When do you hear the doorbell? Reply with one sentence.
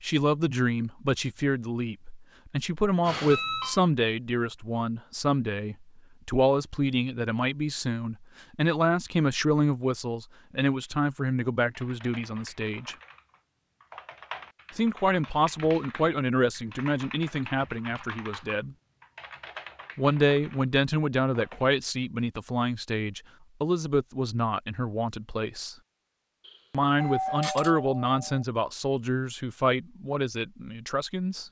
You can hear the doorbell from 3.0 to 3.8 s and from 26.4 to 28.4 s.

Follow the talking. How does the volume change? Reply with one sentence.
The volume of the talking stays about the same.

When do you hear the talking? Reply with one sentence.
You can hear the talking from 0.0 to 12.9 s, from 14.8 to 18.8 s, from 19.9 to 25.8 s and from 26.7 to 31.4 s.